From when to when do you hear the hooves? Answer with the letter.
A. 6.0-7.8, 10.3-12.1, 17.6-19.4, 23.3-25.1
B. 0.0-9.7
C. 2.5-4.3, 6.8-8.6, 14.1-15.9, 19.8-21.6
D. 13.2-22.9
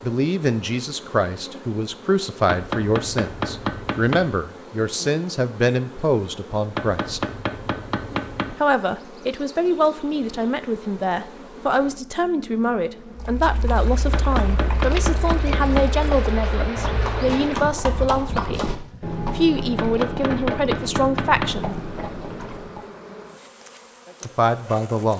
D.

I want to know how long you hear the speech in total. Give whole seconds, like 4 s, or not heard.
21 s.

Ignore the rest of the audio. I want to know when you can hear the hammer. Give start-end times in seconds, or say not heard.
2.5-4.3, 6.8-8.6, 14.1-15.9, 19.8-21.6.